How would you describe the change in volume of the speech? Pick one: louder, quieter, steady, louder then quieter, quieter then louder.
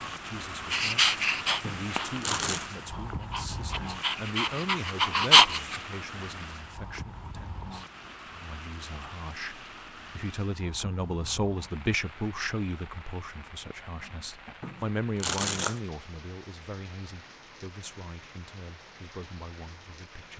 louder then quieter.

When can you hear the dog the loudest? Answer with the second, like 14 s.
5 s.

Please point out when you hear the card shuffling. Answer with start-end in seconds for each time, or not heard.
1.6-2.6, 14.6-15.8.